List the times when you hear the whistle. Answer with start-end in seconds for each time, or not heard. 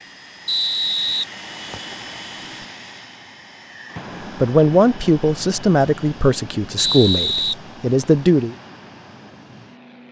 0.5-1.9, 6.8-8.1.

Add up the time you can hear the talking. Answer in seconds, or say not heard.
4 s.